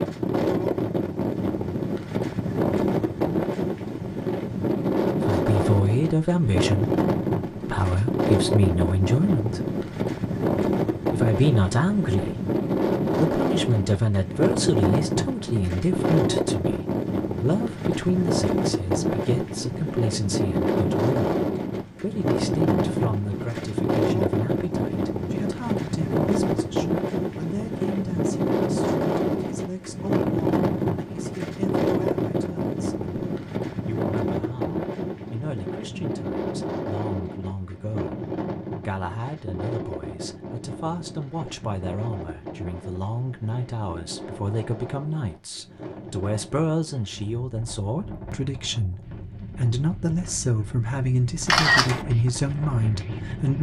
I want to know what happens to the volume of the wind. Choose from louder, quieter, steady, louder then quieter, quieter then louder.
quieter.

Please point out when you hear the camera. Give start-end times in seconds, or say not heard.
51.5-52.0.